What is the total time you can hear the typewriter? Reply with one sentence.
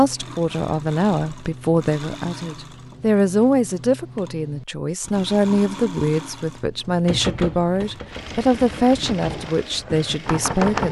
The typewriter can be heard for 4 seconds in total.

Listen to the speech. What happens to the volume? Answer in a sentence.
The loudness of the speech stays about the same.